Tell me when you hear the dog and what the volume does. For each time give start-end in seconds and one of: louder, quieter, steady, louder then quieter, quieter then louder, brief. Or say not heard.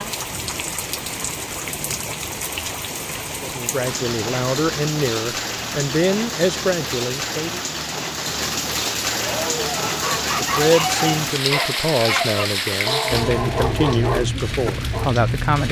9.1-15.2 steady.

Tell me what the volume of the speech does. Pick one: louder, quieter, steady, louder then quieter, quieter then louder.
steady.